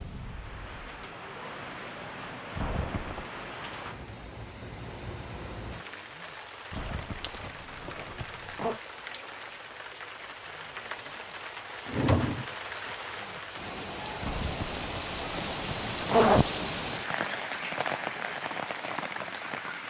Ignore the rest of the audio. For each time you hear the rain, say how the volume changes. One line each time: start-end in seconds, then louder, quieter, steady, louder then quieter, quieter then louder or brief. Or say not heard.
0.0-19.8 louder.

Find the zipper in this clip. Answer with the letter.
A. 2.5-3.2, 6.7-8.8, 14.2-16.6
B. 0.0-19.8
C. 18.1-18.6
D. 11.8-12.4
A.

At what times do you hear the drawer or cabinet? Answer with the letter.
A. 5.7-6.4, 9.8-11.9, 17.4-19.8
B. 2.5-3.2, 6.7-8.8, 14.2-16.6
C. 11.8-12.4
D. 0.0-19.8
C.